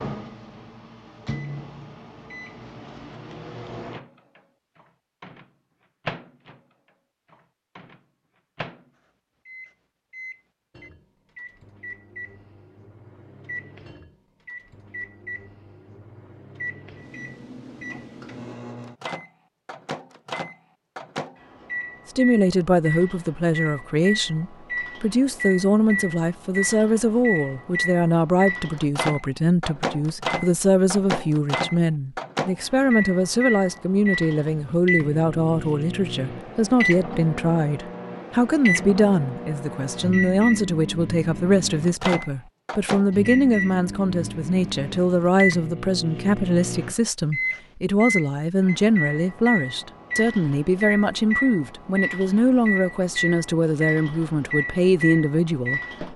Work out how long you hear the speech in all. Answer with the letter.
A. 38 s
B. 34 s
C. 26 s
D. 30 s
B.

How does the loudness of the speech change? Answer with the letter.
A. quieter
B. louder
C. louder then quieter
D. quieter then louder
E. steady
E.